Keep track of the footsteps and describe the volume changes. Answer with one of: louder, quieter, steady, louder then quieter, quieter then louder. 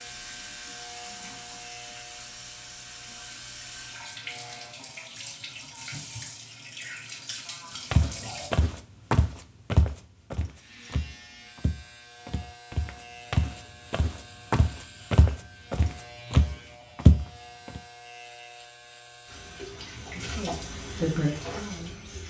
quieter then louder.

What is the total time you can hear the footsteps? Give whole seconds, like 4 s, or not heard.
10 s.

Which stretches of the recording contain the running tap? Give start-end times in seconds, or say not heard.
0.0-8.5, 19.2-22.2.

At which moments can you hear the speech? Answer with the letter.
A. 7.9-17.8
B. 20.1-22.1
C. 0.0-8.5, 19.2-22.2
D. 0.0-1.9
B.